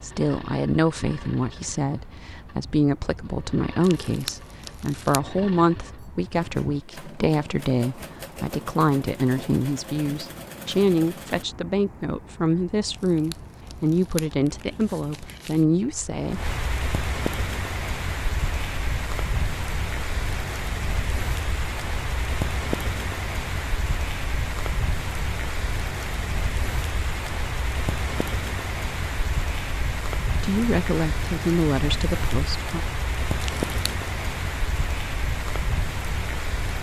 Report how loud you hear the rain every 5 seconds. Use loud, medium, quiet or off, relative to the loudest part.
quiet, quiet, quiet, loud, loud, loud, loud, loud.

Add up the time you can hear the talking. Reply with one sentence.
The talking can be heard for 19 seconds in total.